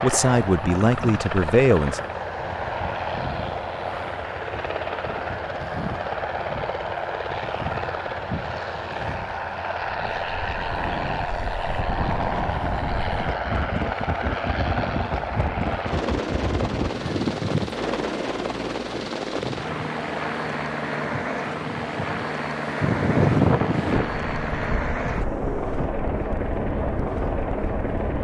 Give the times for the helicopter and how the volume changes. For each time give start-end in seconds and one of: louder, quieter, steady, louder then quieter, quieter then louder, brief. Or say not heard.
0.0-28.2 steady.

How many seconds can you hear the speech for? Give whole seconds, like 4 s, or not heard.
2 s.